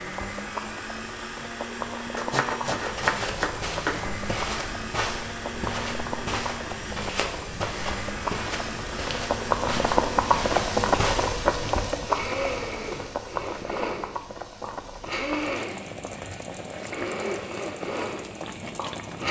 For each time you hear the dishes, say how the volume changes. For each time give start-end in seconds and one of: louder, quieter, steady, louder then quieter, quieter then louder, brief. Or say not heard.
not heard.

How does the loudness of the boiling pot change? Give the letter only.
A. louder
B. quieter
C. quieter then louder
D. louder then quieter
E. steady
D.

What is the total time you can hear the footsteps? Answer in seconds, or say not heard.
9 s.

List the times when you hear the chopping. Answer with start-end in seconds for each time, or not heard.
2.1-4.2.